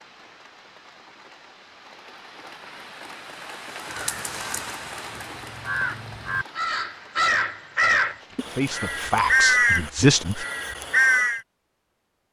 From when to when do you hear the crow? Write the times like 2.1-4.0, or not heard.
3.8-11.4.